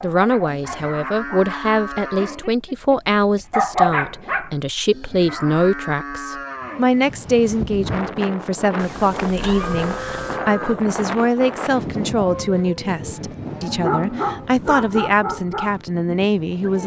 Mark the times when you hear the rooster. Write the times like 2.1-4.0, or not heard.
not heard.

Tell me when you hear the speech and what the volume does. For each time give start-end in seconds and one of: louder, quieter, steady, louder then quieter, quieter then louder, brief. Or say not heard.
0.0-16.8 steady.